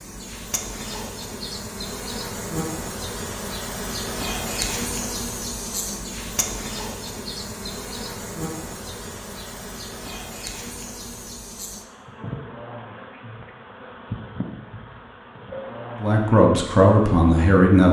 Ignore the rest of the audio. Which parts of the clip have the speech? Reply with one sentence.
The speech can be heard from 16.0 to 17.8 s.